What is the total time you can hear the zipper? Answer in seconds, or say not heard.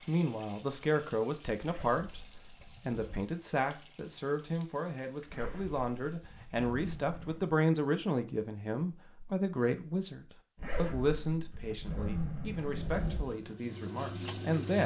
6 s.